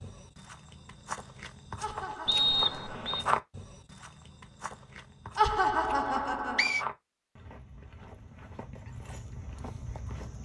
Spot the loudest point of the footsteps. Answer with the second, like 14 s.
3 s.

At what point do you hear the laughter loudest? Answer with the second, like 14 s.
6 s.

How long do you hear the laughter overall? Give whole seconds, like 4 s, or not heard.
3 s.